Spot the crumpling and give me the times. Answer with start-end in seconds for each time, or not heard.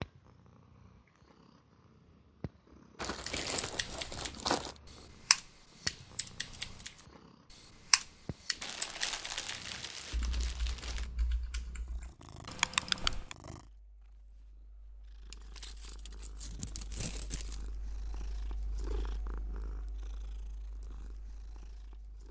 3.0-4.8, 8.6-11.1, 15.3-17.7.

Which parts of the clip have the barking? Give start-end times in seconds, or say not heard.
not heard.